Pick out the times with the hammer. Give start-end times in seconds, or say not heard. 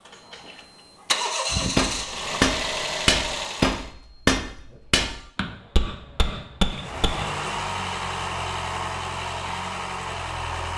1.5-7.3.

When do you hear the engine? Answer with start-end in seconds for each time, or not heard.
0.0-3.9, 6.7-10.7.